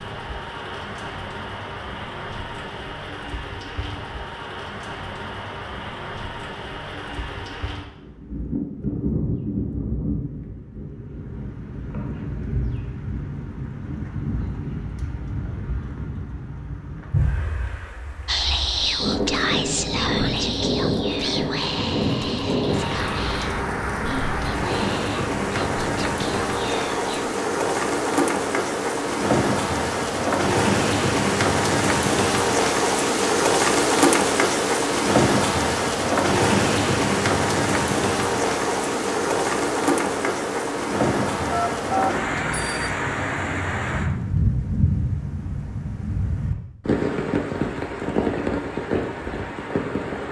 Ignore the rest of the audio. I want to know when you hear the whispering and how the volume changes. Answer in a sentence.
You can hear the whispering from 18.2 to 27.3 s, getting quieter.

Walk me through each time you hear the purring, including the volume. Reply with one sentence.
You can't hear the purring here.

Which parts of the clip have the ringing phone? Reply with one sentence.
You can hear the ringing phone from 41.5 to 43.0 s.